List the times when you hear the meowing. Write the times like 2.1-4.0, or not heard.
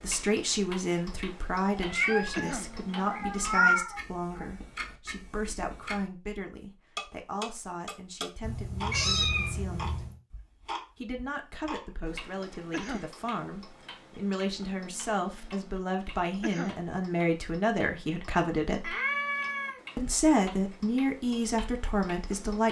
1.7-4.5, 8.4-10.2, 18.8-19.8.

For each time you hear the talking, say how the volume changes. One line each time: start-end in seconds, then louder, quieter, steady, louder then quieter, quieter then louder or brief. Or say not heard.
0.0-10.1 quieter
10.9-18.9 louder
19.9-22.6 brief.